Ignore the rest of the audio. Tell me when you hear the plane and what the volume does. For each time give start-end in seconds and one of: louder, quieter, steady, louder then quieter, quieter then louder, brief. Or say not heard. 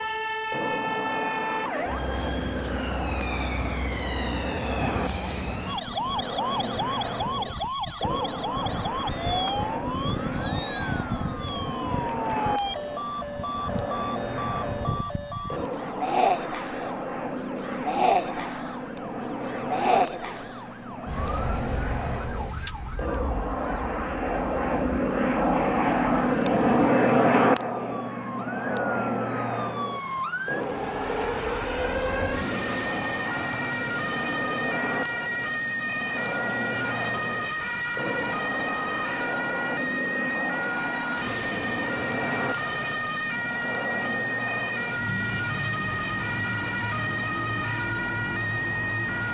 0.0-49.2 louder then quieter.